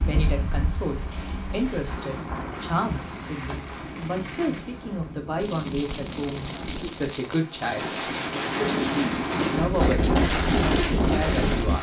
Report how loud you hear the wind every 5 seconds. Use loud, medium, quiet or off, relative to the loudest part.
medium, medium, loud.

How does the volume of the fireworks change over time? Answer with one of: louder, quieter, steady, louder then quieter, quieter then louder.
louder.